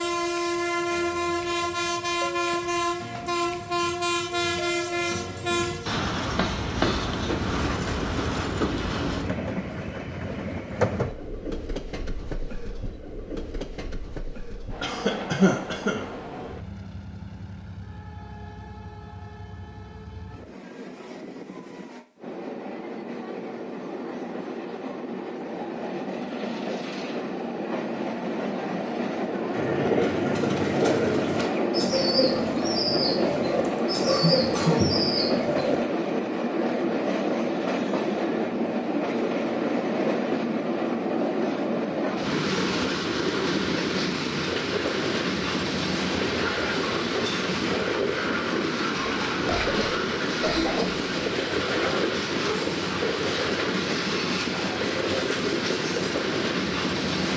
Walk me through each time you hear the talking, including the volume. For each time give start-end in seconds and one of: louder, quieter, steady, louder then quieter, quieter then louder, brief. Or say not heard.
not heard.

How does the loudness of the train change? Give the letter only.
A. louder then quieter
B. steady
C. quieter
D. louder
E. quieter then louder
E.